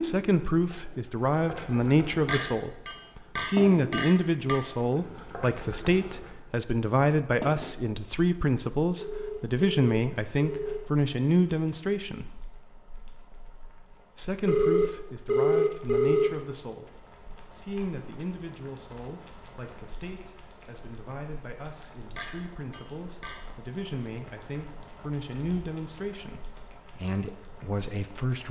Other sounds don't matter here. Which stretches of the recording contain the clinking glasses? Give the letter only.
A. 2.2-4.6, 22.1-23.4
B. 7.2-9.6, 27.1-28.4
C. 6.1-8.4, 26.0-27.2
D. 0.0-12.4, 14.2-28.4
A.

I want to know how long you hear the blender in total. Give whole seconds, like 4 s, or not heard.
not heard.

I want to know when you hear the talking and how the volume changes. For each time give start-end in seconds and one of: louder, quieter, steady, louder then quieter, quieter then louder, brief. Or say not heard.
0.0-12.4 steady
14.2-28.4 quieter then louder.